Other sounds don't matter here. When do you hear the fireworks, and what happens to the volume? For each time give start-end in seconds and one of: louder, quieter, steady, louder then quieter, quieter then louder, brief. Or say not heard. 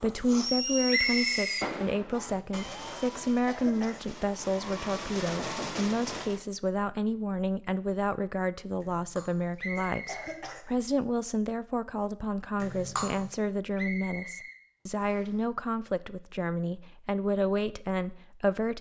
0.0-6.4 quieter then louder.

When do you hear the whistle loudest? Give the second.
1 s.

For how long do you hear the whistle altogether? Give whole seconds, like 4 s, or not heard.
4 s.